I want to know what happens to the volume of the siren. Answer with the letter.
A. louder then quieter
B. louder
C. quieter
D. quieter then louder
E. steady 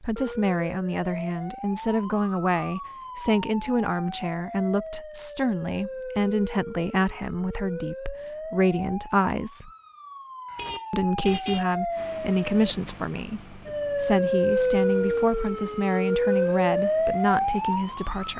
B.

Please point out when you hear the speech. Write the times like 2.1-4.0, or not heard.
0.0-9.7, 10.9-18.3.